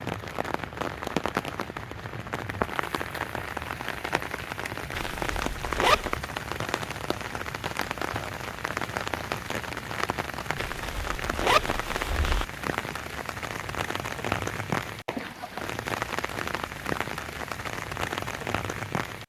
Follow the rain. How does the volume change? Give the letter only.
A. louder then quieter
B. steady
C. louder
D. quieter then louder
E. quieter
B.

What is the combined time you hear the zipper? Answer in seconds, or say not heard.
3 s.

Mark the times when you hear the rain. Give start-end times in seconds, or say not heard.
0.0-19.2.